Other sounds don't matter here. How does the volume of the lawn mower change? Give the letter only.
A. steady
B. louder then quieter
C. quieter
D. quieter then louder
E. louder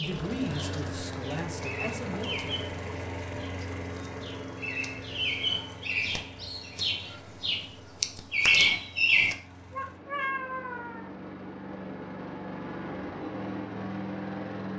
D.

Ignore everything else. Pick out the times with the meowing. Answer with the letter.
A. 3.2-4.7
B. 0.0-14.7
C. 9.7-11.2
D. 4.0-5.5
C.